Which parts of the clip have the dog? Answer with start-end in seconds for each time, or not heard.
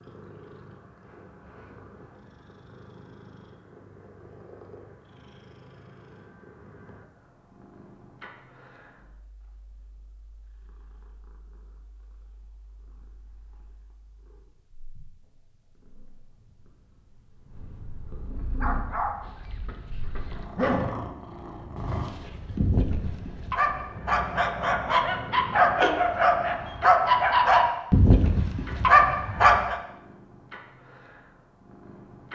18.4-20.9, 21.8-29.8.